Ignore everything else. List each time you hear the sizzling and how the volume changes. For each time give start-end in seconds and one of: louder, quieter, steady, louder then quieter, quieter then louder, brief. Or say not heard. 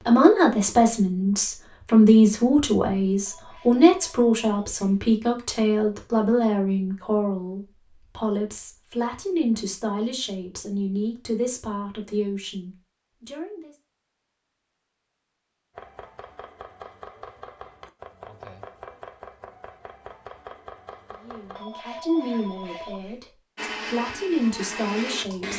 not heard.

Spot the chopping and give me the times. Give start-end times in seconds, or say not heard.
15.8-21.6.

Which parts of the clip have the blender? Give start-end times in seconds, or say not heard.
23.6-25.5.